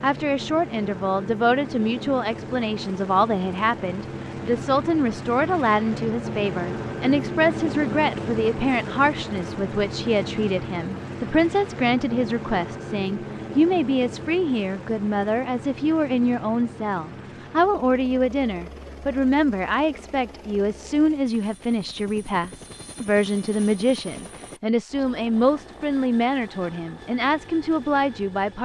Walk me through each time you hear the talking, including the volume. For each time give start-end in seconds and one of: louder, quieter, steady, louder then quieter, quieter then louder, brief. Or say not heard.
0.0-28.5 steady.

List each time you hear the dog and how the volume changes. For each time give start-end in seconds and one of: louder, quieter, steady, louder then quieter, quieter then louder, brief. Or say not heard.
not heard.